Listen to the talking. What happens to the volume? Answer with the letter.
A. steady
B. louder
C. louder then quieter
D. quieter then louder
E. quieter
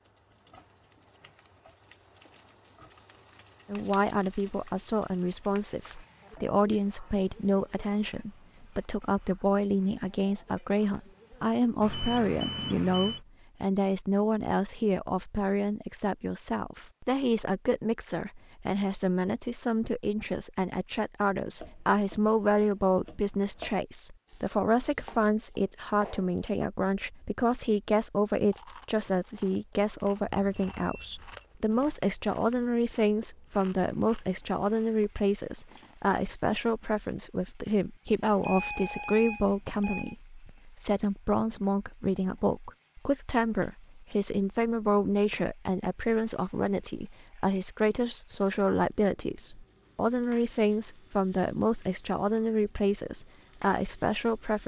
A.